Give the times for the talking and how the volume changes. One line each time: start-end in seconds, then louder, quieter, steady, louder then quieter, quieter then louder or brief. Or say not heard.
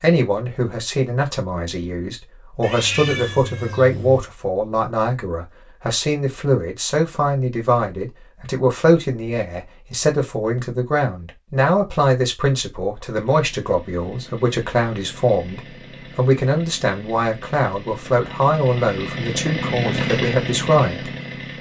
0.0-21.5 steady.